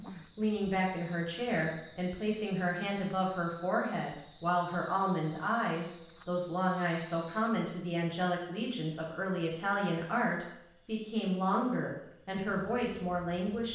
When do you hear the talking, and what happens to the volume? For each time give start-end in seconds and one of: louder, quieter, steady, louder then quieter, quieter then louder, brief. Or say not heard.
0.0-13.7 steady.